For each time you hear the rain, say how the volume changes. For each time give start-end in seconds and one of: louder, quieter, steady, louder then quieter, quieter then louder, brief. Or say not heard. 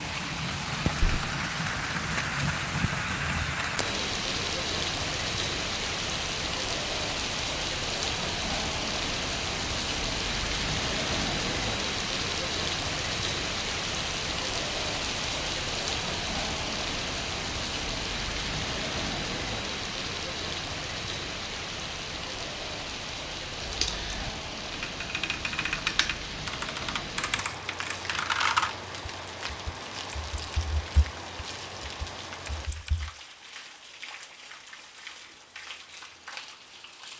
0.0-37.1 quieter.